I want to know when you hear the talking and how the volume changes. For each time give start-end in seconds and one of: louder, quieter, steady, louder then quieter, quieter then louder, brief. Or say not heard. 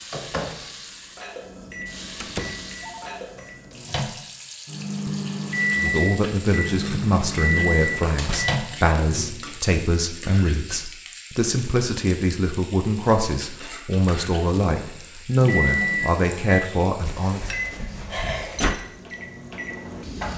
5.8-17.5 steady.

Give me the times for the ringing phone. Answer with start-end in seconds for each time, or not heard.
2.8-3.2.